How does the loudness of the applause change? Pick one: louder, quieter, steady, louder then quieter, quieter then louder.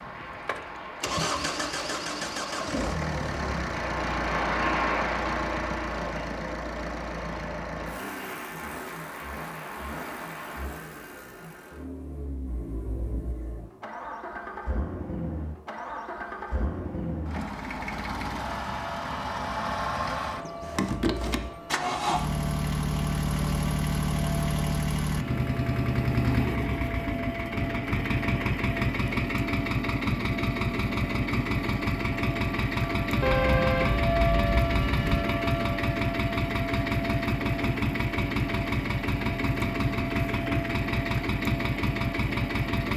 louder then quieter.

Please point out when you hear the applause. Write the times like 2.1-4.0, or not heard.
0.0-10.7.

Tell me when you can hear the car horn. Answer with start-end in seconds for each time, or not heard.
33.2-35.2.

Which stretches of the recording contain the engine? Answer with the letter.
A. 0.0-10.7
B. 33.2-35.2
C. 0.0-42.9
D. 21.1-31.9
C.